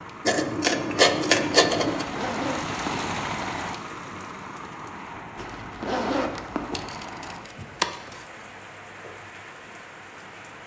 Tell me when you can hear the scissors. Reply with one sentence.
The scissors can be heard from 0.2 to 2.0 s and from 6.3 to 8.2 s.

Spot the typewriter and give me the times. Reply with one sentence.
The typewriter can't be heard in this clip.